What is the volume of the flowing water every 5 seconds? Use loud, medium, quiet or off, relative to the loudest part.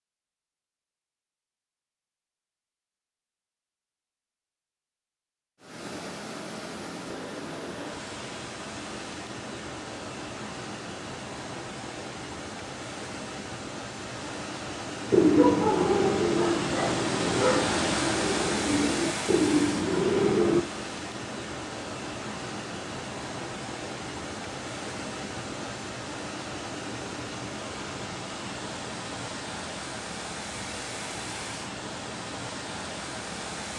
off, medium, medium, loud, medium, medium, medium.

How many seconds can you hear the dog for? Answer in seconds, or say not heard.
2 s.